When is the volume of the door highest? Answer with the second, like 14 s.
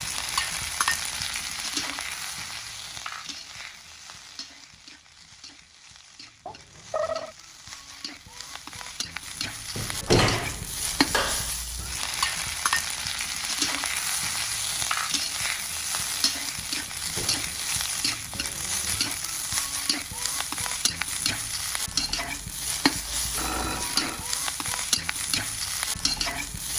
10 s.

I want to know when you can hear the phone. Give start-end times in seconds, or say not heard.
6.5-7.3, 23.4-24.2.